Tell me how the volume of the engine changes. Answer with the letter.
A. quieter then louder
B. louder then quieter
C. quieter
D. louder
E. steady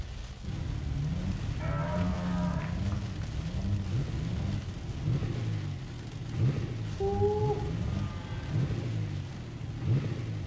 E.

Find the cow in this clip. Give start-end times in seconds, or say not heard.
1.5-3.2, 7.0-8.7.